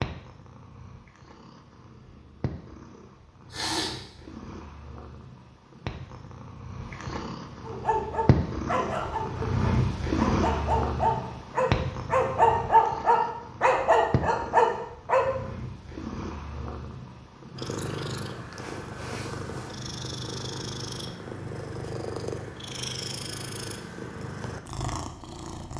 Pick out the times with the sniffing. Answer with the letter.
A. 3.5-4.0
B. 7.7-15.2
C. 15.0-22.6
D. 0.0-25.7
A.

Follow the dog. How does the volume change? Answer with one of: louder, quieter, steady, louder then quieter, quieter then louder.
louder.